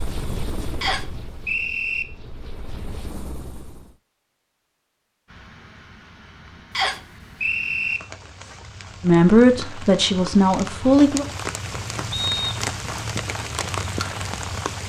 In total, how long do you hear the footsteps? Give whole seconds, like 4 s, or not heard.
not heard.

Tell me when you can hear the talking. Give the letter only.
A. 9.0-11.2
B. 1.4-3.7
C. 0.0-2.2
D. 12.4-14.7
A.